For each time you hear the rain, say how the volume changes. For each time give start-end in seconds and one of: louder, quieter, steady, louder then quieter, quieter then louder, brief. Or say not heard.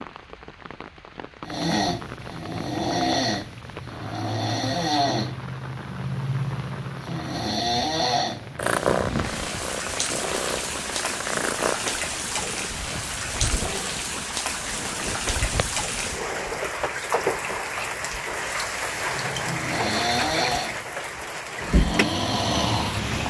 0.0-23.2 louder.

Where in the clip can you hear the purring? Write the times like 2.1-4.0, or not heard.
8.6-16.5.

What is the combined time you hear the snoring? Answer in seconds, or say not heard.
12 s.